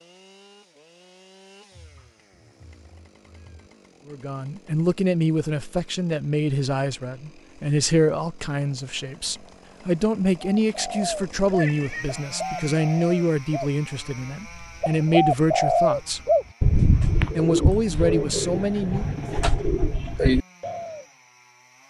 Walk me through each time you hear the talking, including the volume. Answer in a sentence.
The talking can be heard from 4.0 to 16.2 s, at a steady volume; and briefly from 17.4 to 19.1 s.